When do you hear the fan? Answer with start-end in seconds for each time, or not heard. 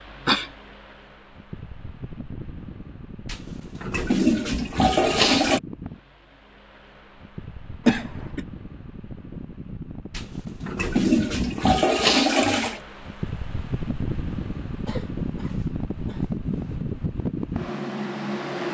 0.0-18.7.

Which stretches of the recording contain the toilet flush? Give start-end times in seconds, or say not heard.
3.2-5.6, 10.1-12.8.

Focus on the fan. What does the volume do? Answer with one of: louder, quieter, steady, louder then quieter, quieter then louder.
louder.